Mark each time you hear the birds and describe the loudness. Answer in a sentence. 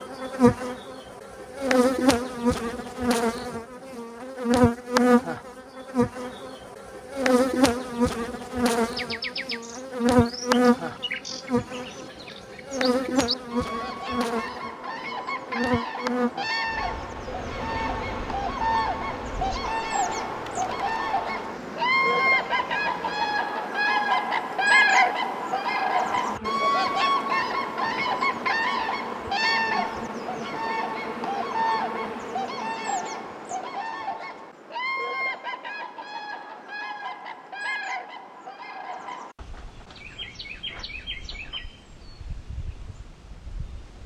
The birds can be heard from 8.8 to 44.0 s, getting louder then quieter.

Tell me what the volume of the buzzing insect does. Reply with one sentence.
The loudness of the buzzing insect goes down.